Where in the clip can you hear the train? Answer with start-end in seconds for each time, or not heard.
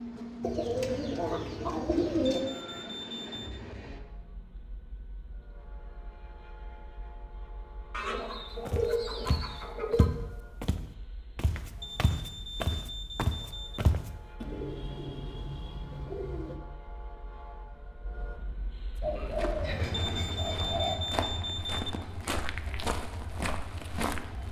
0.0-24.4.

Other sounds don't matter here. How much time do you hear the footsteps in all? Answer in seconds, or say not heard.
11 s.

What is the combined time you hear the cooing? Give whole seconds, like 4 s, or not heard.
8 s.